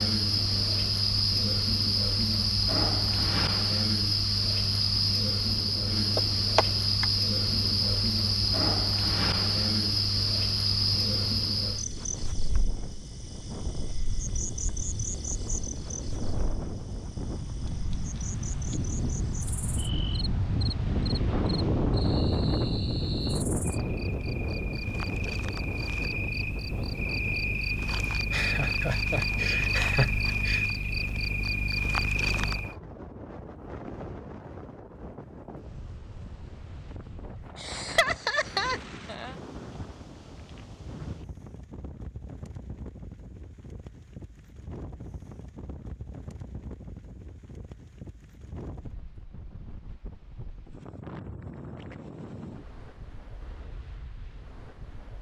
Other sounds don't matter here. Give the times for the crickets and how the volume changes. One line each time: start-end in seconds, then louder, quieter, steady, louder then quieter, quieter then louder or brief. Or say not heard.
0.0-32.8 quieter then louder.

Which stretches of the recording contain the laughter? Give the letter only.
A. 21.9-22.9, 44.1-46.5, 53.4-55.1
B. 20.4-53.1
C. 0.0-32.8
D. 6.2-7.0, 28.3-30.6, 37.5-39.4
D.